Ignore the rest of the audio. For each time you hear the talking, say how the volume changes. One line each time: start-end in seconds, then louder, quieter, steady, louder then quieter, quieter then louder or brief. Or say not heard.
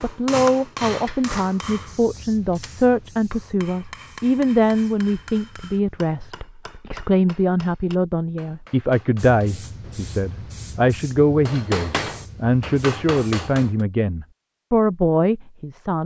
0.0-16.0 steady.